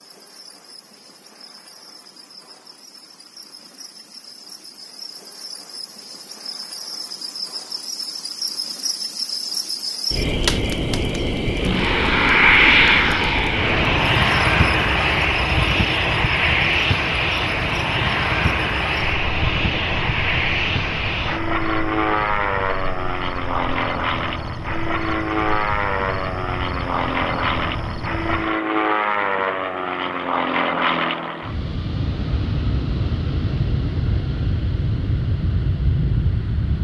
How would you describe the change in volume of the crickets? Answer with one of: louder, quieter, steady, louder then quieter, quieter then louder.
louder then quieter.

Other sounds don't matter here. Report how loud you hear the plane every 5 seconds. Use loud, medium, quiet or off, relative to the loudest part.
off, off, loud, loud, medium, medium, medium, medium.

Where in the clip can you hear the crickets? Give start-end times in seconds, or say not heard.
0.0-28.6.